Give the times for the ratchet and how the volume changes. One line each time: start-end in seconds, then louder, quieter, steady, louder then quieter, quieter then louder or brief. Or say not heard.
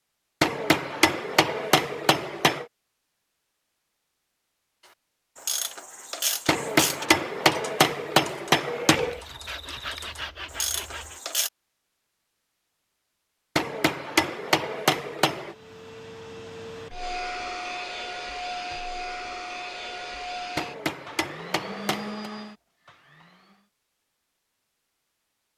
5.3-11.5 quieter then louder.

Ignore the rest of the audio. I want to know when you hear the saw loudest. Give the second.
10 s.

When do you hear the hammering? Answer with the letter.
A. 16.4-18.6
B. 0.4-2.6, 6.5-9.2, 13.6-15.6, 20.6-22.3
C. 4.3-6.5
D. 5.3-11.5
B.